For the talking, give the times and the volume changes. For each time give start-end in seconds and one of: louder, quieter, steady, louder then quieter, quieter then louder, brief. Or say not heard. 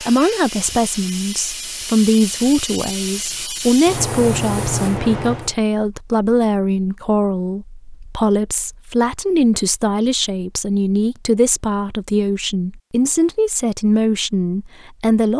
0.0-15.3 steady.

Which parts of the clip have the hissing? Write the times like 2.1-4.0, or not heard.
0.0-5.5.